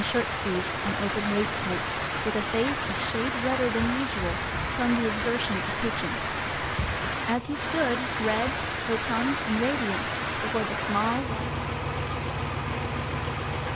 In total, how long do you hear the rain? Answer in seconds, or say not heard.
14 s.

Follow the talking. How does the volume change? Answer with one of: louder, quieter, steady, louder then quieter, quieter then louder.
steady.